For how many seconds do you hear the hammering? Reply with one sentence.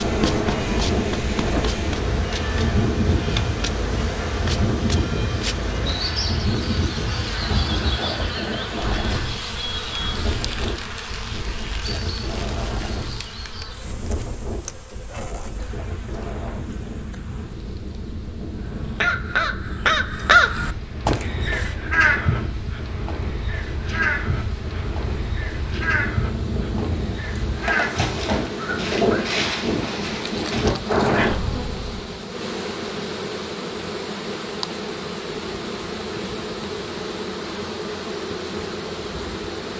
You can't hear the hammering here.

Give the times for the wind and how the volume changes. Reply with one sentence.
The wind can be heard from 0.0 to 31.9 s, getting quieter then louder.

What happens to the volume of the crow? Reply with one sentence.
The loudness of the crow goes down.